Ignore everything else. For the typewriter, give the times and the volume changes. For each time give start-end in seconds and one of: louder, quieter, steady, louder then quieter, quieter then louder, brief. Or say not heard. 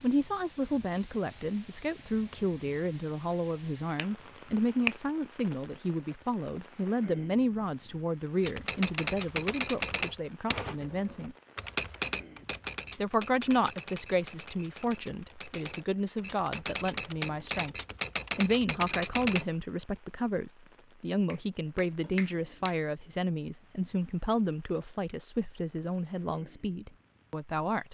8.4-19.4 quieter then louder.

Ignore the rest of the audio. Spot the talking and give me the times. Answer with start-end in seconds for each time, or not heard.
0.0-11.3, 12.9-17.8, 18.4-27.8.